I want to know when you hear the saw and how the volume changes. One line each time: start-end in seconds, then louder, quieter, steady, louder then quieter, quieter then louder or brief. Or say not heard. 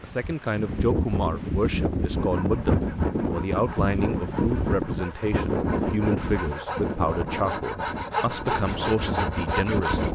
2.1-10.1 louder.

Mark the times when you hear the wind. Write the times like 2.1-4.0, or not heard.
0.0-10.1.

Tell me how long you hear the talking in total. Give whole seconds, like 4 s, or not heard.
10 s.